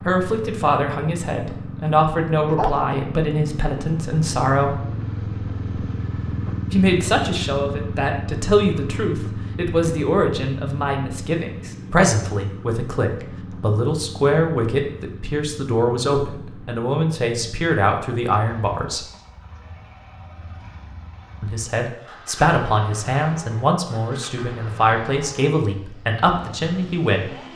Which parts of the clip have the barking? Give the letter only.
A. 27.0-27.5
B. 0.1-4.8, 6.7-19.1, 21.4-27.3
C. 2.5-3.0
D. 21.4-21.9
C.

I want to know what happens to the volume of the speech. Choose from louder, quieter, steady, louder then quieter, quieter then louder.
steady.